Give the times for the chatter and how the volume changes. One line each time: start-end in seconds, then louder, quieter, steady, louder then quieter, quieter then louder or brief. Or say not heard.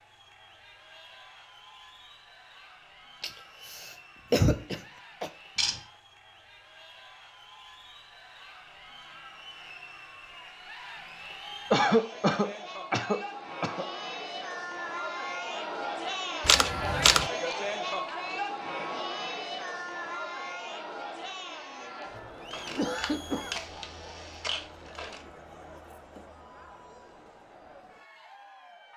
0.0-28.9 louder then quieter.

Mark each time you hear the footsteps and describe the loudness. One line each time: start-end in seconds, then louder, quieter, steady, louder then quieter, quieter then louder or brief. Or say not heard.
not heard.